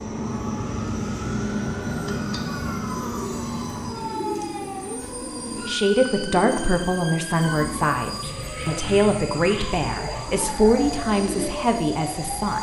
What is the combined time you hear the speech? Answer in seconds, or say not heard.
7 s.